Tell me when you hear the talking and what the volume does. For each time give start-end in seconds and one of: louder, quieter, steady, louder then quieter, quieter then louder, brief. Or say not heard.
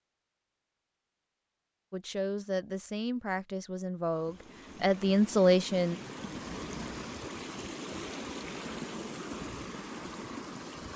1.9-6.0 louder.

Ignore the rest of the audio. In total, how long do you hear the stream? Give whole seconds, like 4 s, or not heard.
7 s.